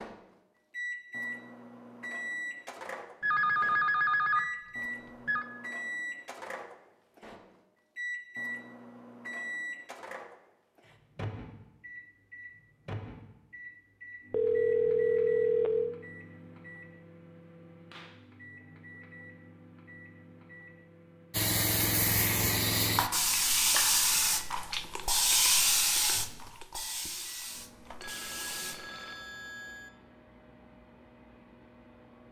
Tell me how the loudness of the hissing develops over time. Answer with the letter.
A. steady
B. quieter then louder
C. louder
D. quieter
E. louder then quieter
D.